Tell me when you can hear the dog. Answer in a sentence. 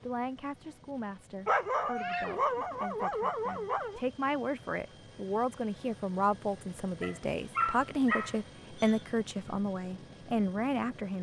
The dog can be heard from 1.4 to 4.0 s and from 7.0 to 9.0 s.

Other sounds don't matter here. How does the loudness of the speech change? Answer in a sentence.
The volume of the speech goes up.